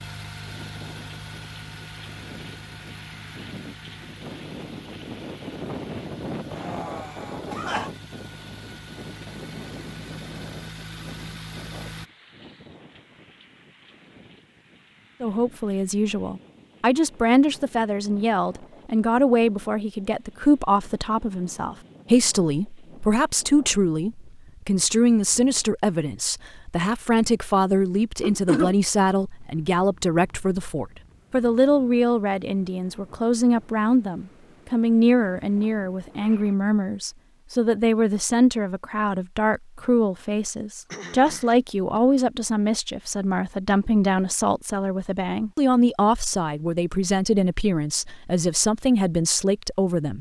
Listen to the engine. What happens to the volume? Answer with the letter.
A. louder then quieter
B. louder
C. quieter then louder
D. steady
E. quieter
C.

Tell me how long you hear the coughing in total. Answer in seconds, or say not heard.
3 s.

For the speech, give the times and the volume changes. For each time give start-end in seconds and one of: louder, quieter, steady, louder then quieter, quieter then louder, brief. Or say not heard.
15.2-50.1 steady.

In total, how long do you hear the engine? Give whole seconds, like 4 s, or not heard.
12 s.